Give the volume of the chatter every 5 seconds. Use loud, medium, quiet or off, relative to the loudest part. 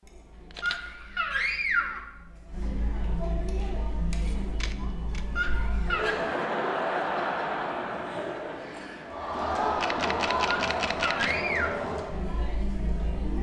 medium, loud, loud.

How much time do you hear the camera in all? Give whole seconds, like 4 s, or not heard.
3 s.